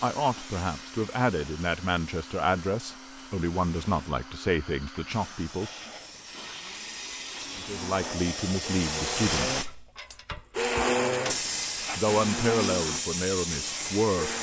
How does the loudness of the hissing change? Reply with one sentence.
The loudness of the hissing goes up.